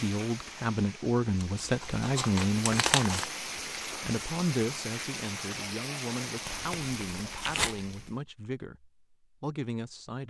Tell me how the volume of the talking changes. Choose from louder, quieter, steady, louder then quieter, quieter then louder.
quieter.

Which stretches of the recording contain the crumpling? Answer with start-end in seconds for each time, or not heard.
1.4-3.3, 6.5-8.1.